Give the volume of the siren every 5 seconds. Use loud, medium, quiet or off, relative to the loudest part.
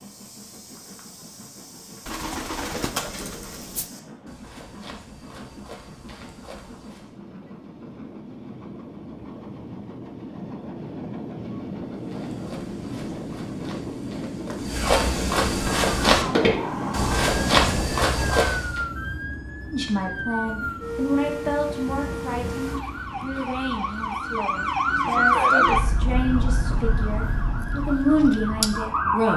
off, off, off, medium, medium, loud.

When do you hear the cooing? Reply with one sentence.
You can hear the cooing from 2.0 to 3.9 s.